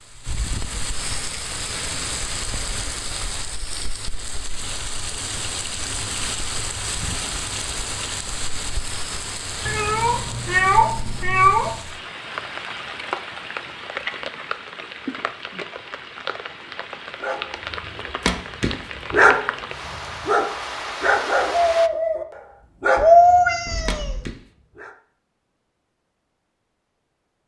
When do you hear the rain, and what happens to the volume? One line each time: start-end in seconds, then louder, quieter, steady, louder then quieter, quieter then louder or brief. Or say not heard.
0.0-21.9 steady.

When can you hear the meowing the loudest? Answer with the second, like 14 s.
23 s.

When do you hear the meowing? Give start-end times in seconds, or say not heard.
9.7-11.7, 22.9-24.3.